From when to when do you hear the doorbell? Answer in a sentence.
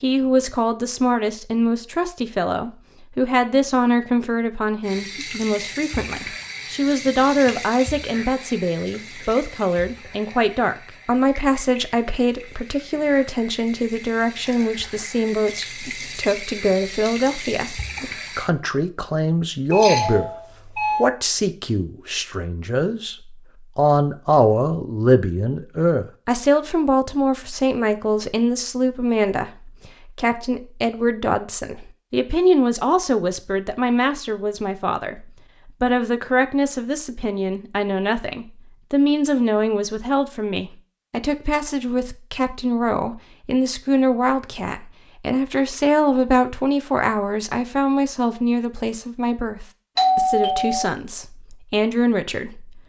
You can hear the doorbell from 19.7 to 21.1 s and from 50.0 to 50.9 s.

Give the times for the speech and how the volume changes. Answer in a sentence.
The speech can be heard from 0.0 to 52.8 s, at a steady volume.